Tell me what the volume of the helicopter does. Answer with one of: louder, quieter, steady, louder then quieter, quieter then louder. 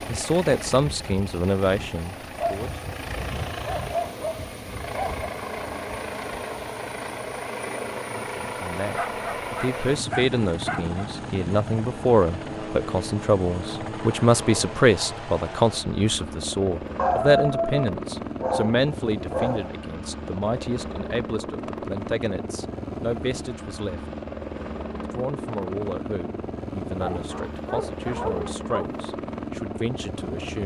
steady.